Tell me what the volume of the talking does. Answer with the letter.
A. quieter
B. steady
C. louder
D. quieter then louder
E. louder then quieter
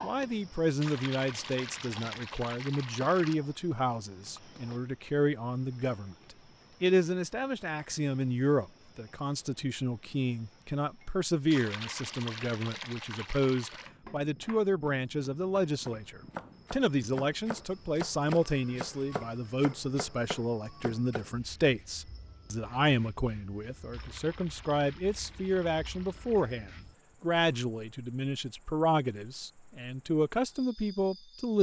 B.